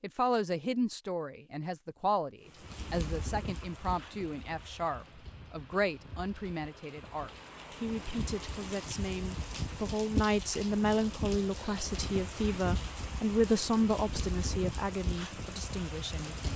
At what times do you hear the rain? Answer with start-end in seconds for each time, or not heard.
2.5-16.5.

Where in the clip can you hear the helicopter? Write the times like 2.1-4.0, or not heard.
not heard.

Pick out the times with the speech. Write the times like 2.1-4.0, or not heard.
0.0-16.5.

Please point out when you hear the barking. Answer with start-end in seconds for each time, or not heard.
not heard.